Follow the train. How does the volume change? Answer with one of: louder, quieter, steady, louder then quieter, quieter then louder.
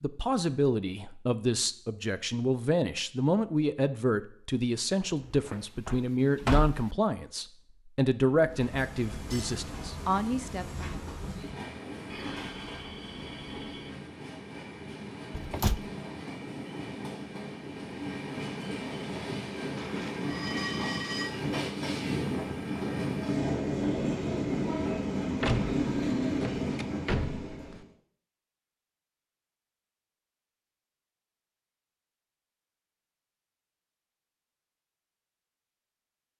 louder.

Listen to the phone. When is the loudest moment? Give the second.
21 s.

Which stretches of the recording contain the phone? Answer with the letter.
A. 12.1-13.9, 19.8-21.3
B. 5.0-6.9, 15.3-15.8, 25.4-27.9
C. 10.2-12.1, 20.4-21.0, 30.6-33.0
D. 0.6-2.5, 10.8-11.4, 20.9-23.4
A.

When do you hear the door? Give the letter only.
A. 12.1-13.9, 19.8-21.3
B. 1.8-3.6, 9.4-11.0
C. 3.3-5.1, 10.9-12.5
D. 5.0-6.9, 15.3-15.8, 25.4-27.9
D.